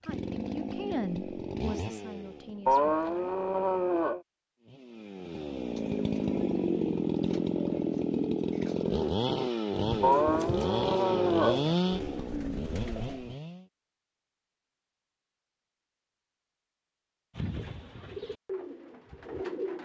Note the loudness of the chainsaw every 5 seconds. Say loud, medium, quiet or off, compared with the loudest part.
medium, loud, loud, off.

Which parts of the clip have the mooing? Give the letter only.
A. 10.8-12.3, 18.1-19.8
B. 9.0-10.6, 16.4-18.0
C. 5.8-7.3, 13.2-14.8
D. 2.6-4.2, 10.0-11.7
D.